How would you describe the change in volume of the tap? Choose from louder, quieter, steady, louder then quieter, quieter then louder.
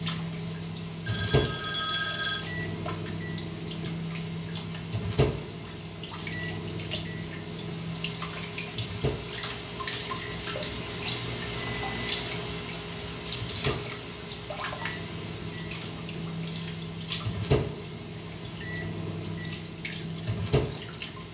louder then quieter.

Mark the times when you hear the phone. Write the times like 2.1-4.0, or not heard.
1.0-2.5.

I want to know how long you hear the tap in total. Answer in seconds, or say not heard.
21 s.